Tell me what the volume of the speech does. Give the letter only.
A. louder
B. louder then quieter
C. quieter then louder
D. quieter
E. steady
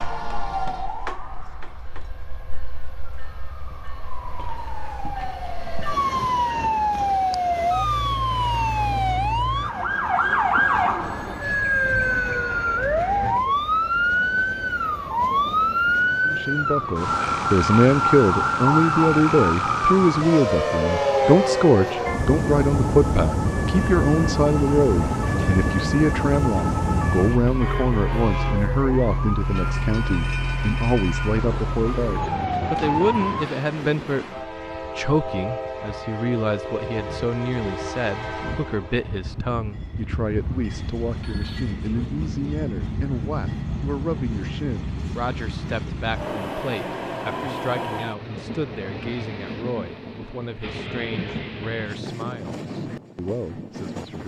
D.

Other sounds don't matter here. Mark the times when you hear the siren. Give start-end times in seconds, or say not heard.
0.0-33.5.